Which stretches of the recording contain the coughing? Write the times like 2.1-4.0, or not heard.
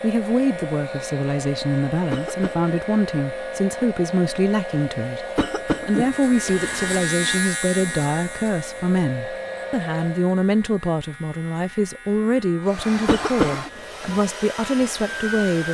2.1-2.6, 5.3-7.1, 13.1-13.7.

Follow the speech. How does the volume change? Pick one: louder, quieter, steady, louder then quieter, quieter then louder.
steady.